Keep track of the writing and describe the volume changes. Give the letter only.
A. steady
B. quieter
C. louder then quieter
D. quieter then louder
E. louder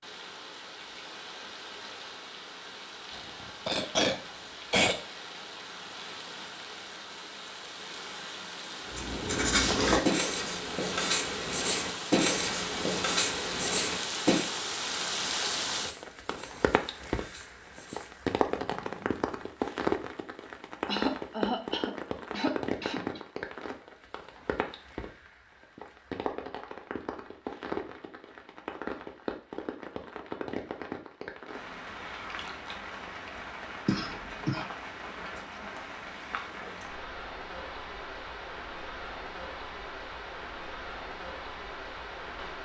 B.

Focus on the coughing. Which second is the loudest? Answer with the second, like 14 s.
5 s.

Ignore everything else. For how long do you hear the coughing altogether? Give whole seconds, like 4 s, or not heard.
5 s.